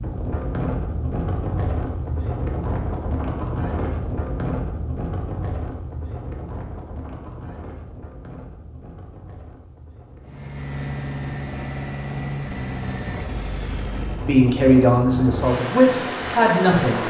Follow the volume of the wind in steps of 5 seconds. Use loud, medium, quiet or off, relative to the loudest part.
loud, medium, medium, loud.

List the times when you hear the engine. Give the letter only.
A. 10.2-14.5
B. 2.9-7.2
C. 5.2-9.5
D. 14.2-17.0
A.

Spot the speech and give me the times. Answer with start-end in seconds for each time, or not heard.
14.2-17.0.